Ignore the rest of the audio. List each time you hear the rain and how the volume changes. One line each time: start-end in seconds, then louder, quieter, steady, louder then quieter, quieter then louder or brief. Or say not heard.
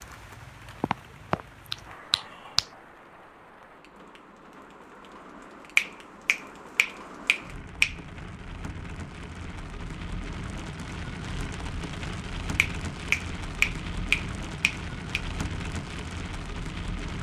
0.0-17.1 louder.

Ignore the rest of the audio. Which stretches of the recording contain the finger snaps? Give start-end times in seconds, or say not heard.
0.8-2.6, 5.8-8.0, 12.6-15.2.